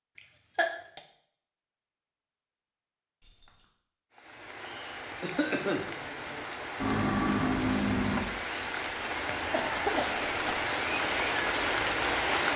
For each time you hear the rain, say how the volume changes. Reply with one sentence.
You can hear the rain from 4.1 to 12.5 s, getting louder.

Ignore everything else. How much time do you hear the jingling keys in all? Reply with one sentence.
You can hear the jingling keys for 2 seconds altogether.